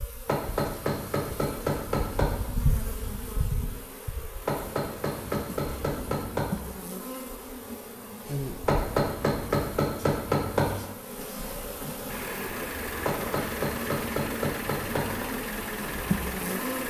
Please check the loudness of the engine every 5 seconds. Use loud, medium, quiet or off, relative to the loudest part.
off, off, loud, loud.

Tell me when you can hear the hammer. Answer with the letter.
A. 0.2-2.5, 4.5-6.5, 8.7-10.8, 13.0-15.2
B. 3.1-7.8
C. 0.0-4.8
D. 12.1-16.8
A.